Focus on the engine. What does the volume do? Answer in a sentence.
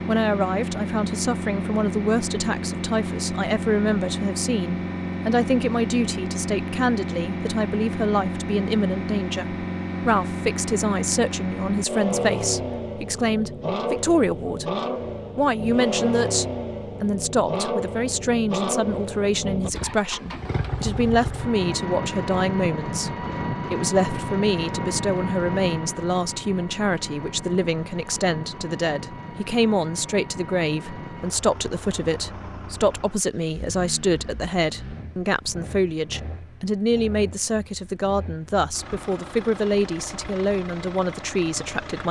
The volume of the engine goes down.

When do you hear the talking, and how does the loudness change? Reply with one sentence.
You can hear the talking from 0.1 to 14.7 s, at a steady volume; and from 15.3 to 42.0 s, at a steady volume.